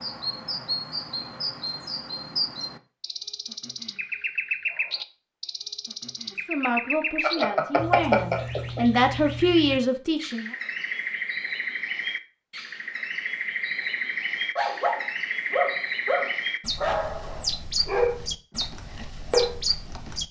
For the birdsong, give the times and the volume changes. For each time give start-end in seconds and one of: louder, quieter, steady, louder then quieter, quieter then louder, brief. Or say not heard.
0.0-20.2 steady.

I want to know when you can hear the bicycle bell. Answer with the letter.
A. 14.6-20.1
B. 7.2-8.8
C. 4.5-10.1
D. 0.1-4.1
B.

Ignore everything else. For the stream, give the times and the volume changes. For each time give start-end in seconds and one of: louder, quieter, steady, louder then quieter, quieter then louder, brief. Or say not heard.
not heard.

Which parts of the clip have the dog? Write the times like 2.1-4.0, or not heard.
14.6-20.1.